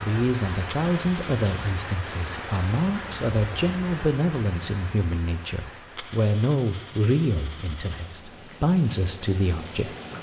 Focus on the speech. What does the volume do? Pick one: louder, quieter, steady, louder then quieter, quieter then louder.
steady.